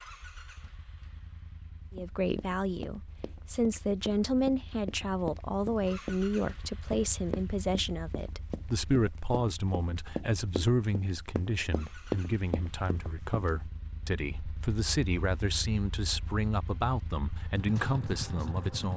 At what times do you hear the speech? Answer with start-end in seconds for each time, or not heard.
1.9-18.9.